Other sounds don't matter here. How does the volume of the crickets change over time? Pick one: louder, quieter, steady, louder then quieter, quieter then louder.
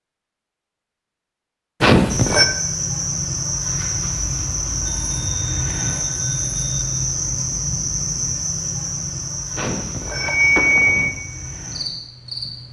quieter.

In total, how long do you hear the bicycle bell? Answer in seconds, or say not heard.
4 s.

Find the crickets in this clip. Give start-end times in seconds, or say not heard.
2.0-12.6.